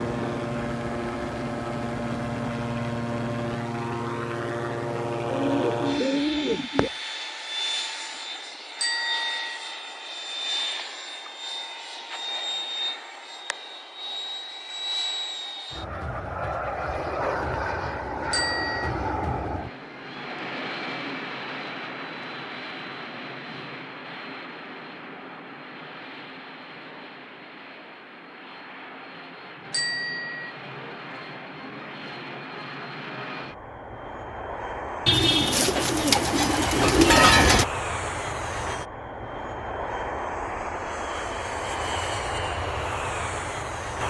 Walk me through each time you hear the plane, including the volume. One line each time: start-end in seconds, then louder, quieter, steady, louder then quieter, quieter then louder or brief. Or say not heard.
0.0-44.0 quieter then louder.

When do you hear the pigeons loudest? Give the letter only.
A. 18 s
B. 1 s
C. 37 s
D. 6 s
C.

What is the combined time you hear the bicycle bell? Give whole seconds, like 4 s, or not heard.
2 s.